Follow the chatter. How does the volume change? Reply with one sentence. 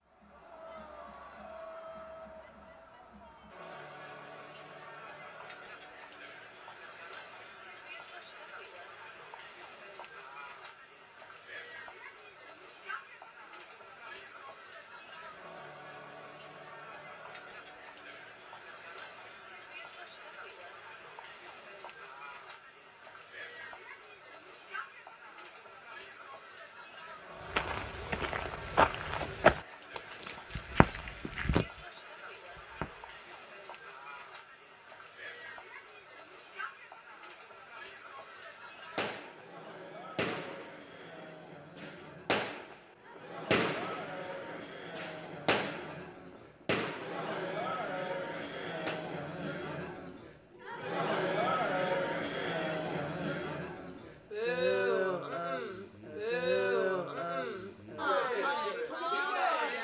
The loudness of the chatter goes up.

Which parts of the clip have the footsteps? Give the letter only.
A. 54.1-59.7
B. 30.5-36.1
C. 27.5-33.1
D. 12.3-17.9
C.